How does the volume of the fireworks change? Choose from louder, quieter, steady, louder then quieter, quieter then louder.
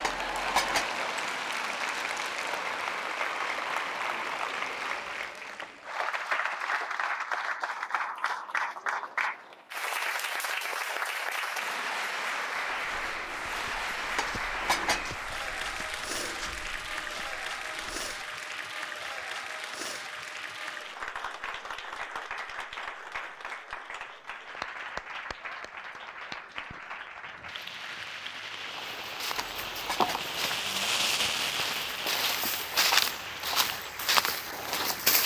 louder then quieter.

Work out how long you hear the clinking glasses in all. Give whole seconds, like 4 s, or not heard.
3 s.